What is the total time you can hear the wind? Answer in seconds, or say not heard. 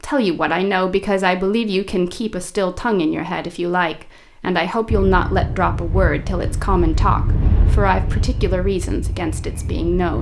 5 s.